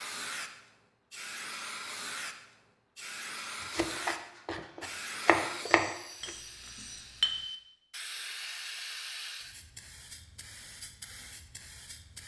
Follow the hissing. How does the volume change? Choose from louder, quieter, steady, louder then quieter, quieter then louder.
quieter.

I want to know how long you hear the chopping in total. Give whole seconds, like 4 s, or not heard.
3 s.